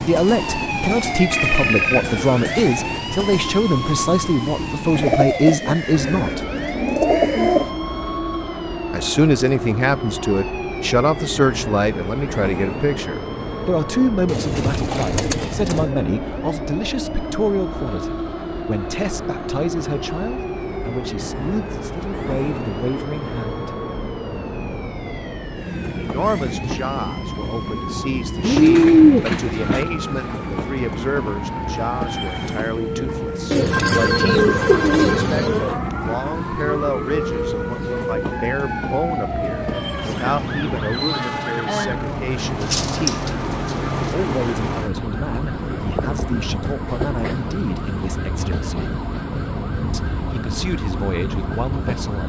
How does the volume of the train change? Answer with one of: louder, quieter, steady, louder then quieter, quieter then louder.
steady.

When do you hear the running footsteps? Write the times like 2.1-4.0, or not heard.
not heard.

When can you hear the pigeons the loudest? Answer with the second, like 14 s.
29 s.